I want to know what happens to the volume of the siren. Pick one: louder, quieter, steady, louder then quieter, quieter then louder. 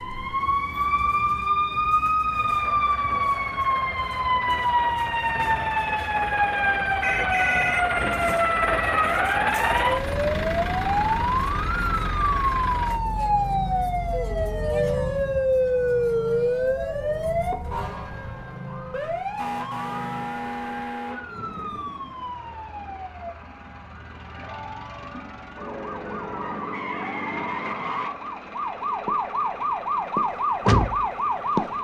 quieter then louder.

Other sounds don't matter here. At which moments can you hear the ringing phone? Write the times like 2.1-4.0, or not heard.
7.0-8.3.